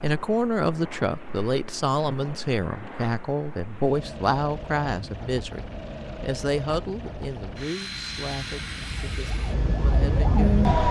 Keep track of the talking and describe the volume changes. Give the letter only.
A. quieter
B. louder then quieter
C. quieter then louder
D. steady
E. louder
A.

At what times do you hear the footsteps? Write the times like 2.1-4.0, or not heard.
not heard.